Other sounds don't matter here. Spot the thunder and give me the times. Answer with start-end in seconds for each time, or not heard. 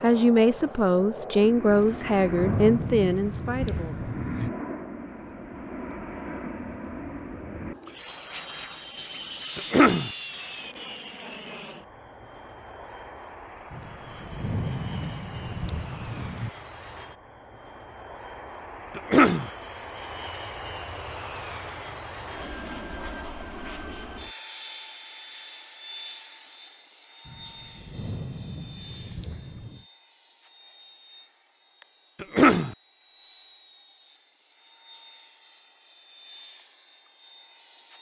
1.7-4.5, 13.7-16.5, 27.2-29.9.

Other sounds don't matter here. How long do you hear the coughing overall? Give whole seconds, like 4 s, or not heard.
2 s.